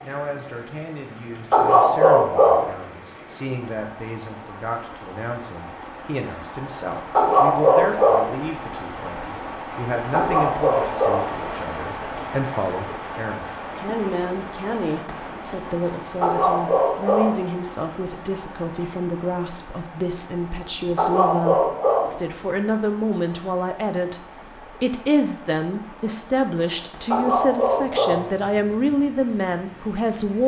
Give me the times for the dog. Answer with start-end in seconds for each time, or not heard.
1.5-2.8, 7.1-8.3, 10.1-11.3, 16.2-17.4, 20.9-22.2, 27.1-28.3.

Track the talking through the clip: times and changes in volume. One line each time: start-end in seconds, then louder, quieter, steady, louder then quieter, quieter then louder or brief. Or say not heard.
0.0-30.4 louder.